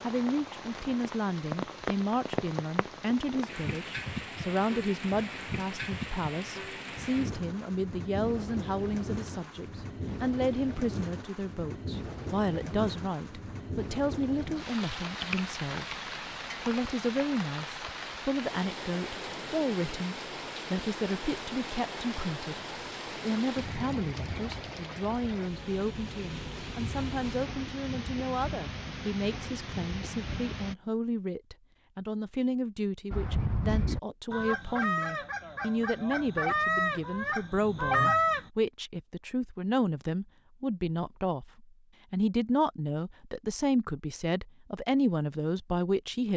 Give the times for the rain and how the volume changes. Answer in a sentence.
You can hear the rain from 0.0 to 30.8 s, at a steady volume.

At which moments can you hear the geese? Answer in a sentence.
The geese can be heard from 33.1 to 38.5 s.